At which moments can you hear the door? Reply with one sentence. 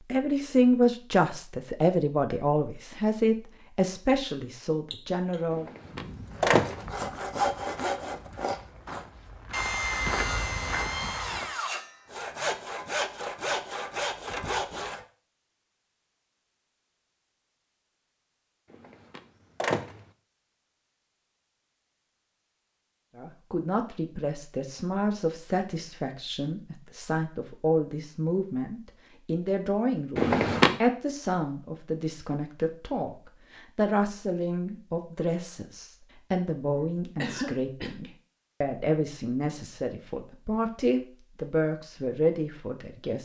The door can be heard from 5.5 to 6.8 s, from 18.7 to 20.1 s and from 30.1 to 30.8 s.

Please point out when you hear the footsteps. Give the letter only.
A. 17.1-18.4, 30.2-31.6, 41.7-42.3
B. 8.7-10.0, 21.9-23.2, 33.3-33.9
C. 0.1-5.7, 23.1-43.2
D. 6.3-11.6
D.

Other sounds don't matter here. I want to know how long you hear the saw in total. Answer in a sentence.
You can hear the saw for 9 seconds altogether.